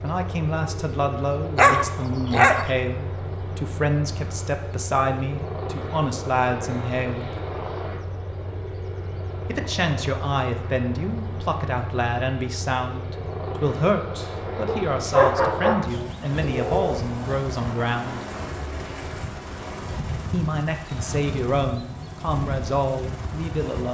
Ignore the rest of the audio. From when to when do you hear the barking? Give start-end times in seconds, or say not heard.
1.6-2.7, 14.7-17.1.